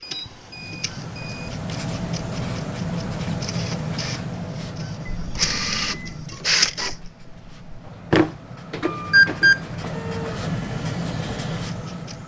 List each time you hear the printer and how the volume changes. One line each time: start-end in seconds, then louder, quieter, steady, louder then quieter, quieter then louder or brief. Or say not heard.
0.0-12.2 louder then quieter.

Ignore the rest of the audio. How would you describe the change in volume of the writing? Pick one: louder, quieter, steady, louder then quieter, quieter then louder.
quieter then louder.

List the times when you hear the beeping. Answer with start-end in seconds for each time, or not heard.
0.0-1.5, 5.0-6.2, 9.1-9.6.